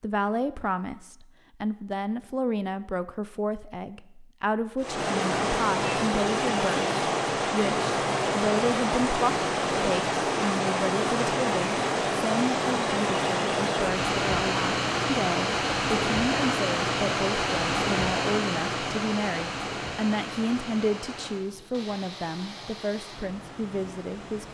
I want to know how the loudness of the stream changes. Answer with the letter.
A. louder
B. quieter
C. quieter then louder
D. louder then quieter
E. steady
B.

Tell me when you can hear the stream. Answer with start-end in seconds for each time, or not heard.
4.8-24.5.